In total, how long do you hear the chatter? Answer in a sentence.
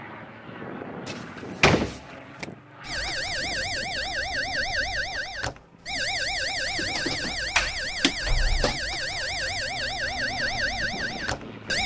You can't hear the chatter here.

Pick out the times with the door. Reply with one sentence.
You can hear the door from 1.1 to 2.5 s and from 7.5 to 8.8 s.